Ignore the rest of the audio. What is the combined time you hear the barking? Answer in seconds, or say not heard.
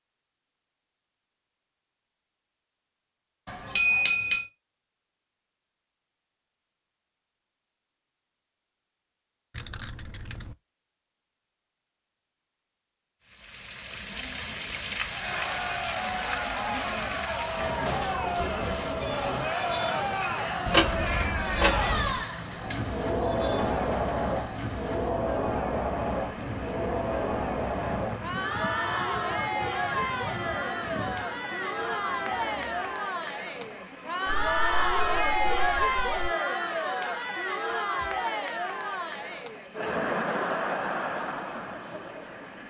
not heard.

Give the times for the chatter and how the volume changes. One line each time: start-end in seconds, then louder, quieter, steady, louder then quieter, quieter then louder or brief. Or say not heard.
15.1-42.6 steady.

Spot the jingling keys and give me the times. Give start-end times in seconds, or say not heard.
9.6-10.6, 20.6-22.2, 37.7-38.2.